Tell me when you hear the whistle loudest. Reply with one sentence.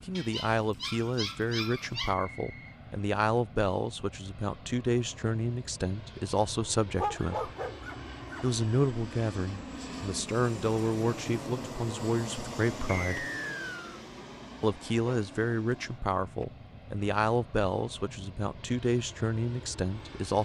The volume of the whistle peaks at 13 seconds.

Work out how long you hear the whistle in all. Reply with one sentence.
The whistle can be heard for 2 seconds in total.